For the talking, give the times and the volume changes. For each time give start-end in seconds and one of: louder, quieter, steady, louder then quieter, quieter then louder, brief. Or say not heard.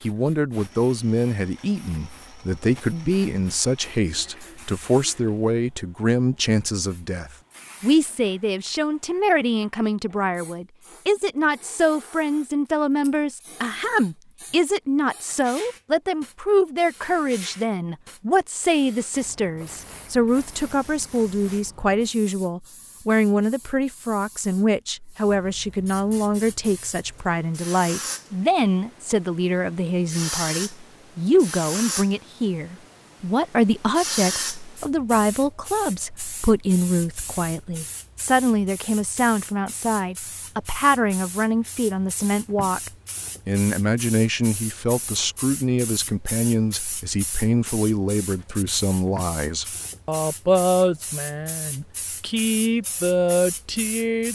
0.0-54.3 steady.